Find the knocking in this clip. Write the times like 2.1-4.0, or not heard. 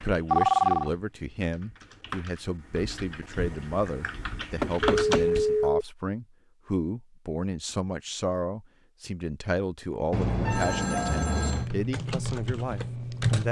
4.6-5.2.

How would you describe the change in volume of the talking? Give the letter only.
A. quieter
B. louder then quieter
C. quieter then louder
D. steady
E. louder
D.